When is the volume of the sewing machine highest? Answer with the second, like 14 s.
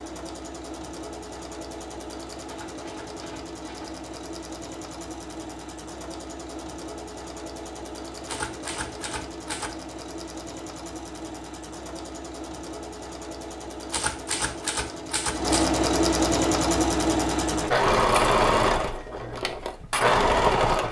18 s.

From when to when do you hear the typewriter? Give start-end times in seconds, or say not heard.
2.5-3.9, 8.2-9.8, 13.9-15.7.